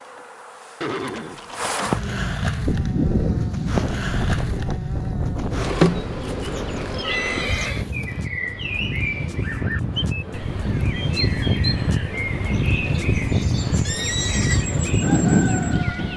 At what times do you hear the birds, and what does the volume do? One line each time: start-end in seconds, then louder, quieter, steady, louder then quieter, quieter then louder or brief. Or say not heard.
6.5-16.1 steady.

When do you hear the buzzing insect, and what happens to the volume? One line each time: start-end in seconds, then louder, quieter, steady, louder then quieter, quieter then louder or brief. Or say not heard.
0.0-8.2 louder then quieter.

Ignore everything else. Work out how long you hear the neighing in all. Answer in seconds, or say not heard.
3 s.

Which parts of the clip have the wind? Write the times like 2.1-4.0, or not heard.
2.6-16.1.